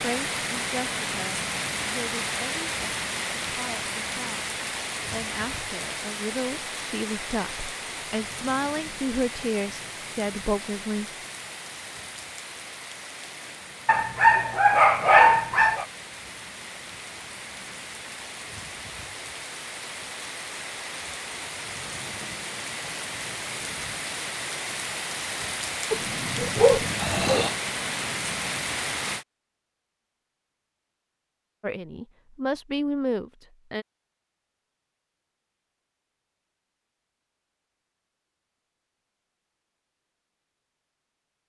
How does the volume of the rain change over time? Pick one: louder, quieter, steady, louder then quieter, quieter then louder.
quieter then louder.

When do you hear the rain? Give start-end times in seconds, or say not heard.
0.0-29.2.